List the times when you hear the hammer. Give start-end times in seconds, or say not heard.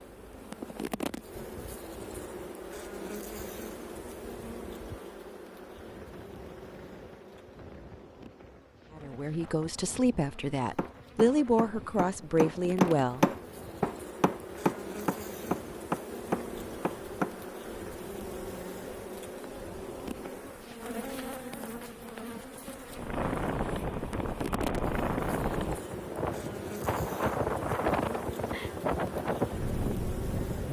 10.8-17.4.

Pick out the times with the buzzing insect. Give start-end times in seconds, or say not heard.
0.0-30.6.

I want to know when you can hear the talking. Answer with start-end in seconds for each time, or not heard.
8.9-13.2.